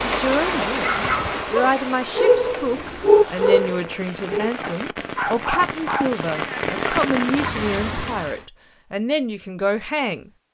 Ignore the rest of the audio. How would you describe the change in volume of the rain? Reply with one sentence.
The loudness of the rain goes down, then up.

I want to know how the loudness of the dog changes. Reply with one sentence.
The volume of the dog goes up, then down.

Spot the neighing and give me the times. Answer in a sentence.
The neighing can't be heard in this clip.